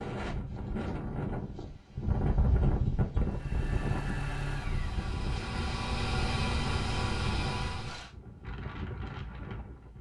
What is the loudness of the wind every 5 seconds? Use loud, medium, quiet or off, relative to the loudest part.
loud, medium.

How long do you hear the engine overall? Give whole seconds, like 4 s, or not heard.
5 s.